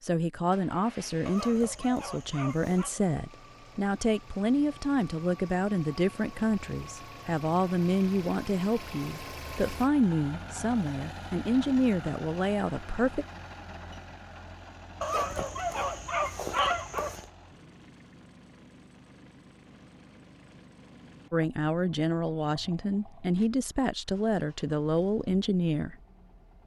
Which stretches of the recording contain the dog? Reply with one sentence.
You can hear the dog from 1.2 to 2.9 s and from 15.0 to 17.2 s.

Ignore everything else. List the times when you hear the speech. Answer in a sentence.
You can hear the speech from 0.0 to 13.2 s and from 21.3 to 25.9 s.